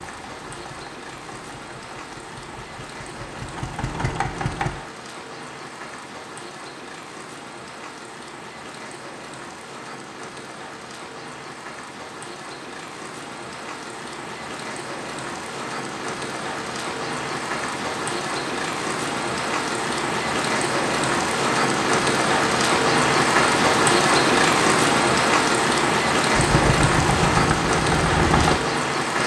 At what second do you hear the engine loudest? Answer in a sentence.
The loudest moment of the engine is at 28 seconds.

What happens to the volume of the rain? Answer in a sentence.
The volume of the rain goes up.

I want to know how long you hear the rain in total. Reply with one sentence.
The rain can be heard for 29 seconds in total.